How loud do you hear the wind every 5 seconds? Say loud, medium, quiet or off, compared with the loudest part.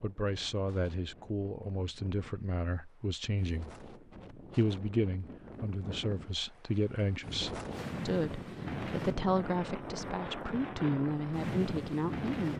quiet, loud, loud.